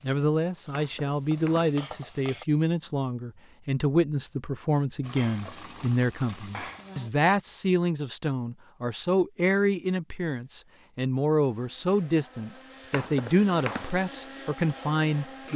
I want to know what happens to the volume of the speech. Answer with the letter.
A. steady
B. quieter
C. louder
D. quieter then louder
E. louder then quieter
A.